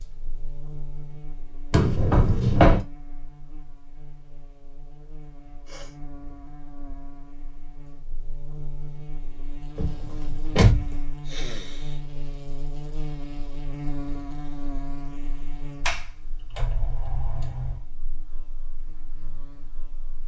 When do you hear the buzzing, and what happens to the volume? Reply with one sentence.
You can hear the buzzing from 0.0 to 20.2 s, getting louder then quieter.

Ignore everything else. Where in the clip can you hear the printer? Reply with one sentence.
The printer can't be heard in this clip.